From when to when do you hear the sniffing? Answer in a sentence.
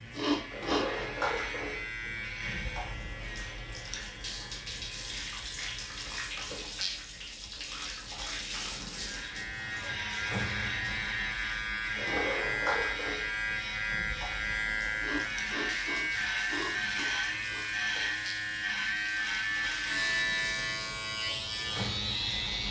You can hear the sniffing from 0.1 to 1.1 s and from 14.9 to 17.6 s.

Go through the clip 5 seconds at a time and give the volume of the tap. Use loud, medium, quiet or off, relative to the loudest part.
loud, loud, loud, medium, loud.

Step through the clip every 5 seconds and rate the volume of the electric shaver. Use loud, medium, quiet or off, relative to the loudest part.
medium, medium, loud, loud, loud.